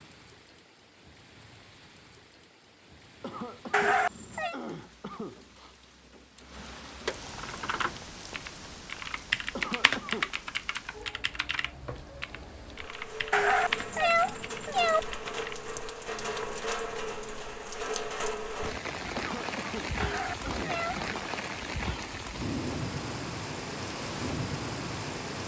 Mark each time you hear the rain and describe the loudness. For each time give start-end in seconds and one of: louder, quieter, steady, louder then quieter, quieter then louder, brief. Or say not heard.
0.0-25.4 louder.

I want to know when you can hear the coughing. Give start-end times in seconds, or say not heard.
3.2-5.8, 9.6-10.4, 19.1-21.2.